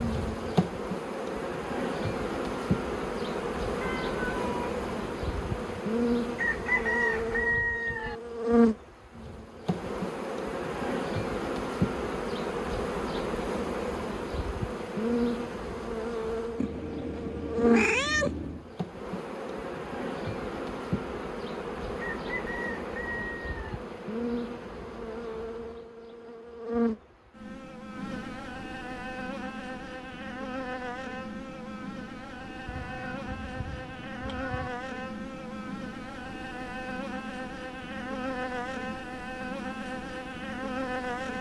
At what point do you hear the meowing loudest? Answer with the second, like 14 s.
18 s.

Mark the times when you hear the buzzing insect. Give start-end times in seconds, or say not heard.
0.0-41.3.